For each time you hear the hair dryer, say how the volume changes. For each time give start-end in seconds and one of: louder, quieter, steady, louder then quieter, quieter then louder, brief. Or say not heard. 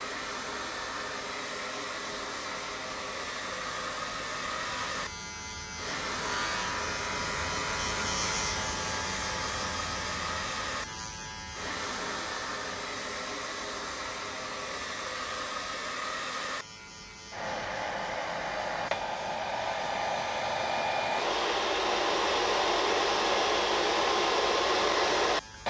0.0-25.6 louder.